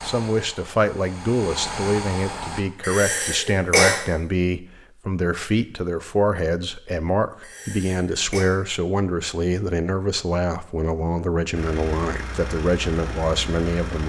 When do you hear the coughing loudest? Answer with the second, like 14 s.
4 s.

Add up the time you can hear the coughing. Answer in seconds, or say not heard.
2 s.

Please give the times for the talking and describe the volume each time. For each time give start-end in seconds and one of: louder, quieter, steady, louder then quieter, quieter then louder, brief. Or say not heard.
0.0-14.0 steady.